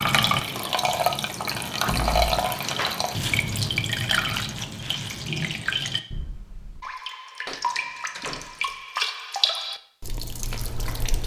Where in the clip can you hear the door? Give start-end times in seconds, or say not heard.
1.9-2.4, 7.5-8.6.